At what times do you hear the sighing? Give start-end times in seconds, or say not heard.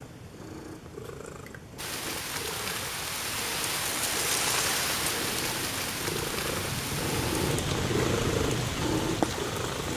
not heard.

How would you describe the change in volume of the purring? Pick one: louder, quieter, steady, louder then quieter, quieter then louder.
louder.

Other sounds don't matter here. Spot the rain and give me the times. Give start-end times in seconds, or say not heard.
1.8-9.9.